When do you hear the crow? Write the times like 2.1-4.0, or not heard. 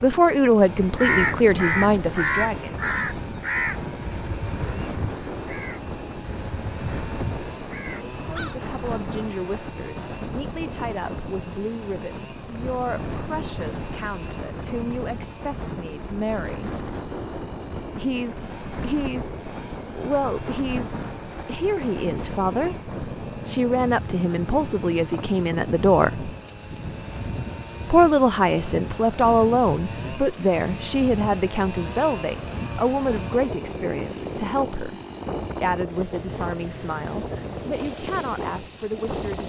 0.9-8.7.